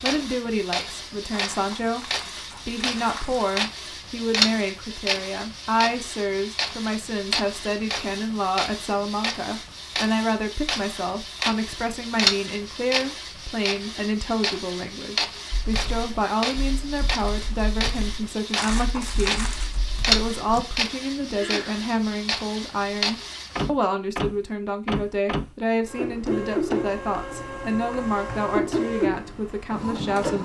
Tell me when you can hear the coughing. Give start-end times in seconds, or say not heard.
21.3-21.9.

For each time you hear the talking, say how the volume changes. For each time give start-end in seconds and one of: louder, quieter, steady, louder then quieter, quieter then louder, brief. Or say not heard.
0.0-30.4 steady.